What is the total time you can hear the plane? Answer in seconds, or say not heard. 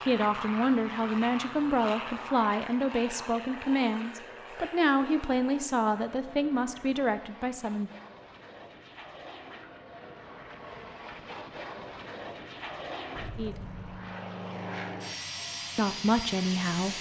17 s.